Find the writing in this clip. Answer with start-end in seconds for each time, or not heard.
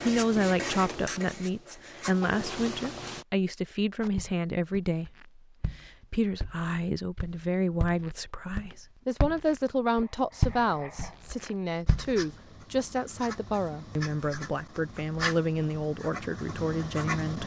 0.0-3.2, 9.9-17.4.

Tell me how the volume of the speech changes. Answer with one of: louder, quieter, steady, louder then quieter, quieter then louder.
steady.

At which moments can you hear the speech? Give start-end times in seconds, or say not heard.
0.0-17.4.